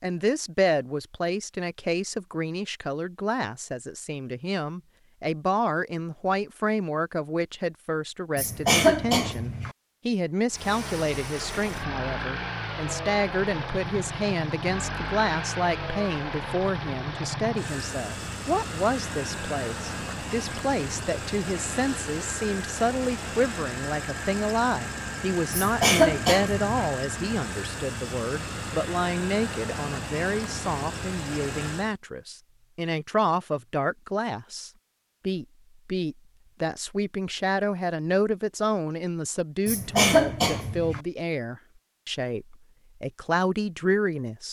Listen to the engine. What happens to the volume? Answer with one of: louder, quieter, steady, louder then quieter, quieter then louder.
steady.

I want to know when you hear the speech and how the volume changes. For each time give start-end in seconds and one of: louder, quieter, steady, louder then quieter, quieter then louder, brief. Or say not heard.
0.0-44.4 steady.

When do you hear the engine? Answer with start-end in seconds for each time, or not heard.
10.5-31.9.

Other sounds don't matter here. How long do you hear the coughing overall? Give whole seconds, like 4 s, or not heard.
4 s.